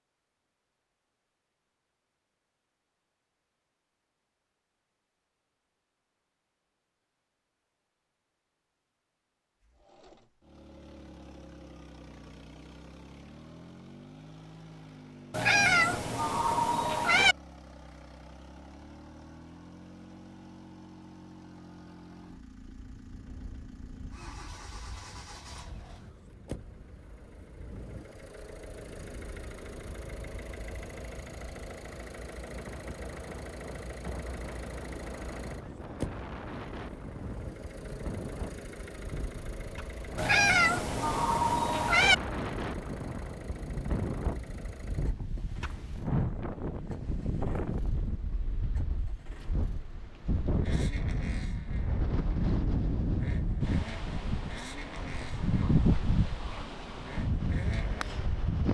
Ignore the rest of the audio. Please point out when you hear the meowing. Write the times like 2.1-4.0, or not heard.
15.3-17.4, 40.1-42.1.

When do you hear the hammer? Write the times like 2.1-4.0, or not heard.
not heard.